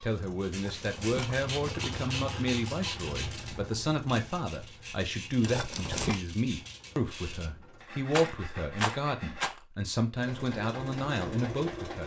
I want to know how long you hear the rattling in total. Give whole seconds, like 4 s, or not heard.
4 s.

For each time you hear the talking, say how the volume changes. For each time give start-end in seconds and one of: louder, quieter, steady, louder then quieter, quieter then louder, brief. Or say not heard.
0.0-12.0 steady.